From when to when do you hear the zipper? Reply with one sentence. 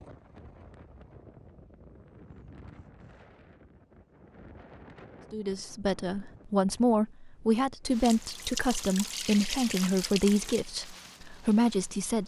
You can't hear the zipper here.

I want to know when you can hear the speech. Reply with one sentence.
You can hear the speech from 5.3 to 12.2 s.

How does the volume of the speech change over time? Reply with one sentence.
The loudness of the speech stays about the same.